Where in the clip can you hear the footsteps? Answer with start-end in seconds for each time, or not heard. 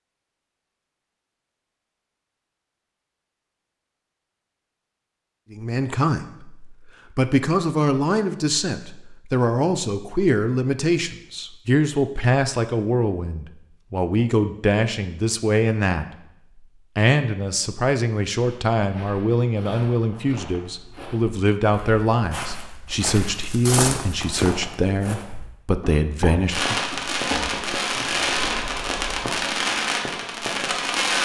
18.4-29.3.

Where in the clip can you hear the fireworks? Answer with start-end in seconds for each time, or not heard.
26.5-31.2.